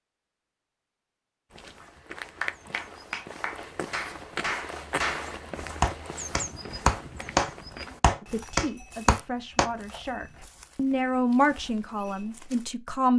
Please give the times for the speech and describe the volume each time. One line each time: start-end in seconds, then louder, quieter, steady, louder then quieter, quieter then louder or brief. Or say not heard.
8.2-13.1 louder then quieter.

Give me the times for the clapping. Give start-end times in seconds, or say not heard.
2.1-9.7.